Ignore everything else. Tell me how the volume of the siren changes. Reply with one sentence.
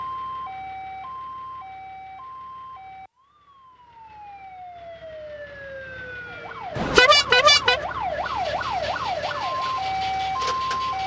The volume of the siren goes down, then up.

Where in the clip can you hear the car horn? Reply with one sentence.
The car horn can be heard from 6.8 to 7.8 s.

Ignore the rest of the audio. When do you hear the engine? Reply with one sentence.
The engine can be heard from 8.1 to 11.0 s.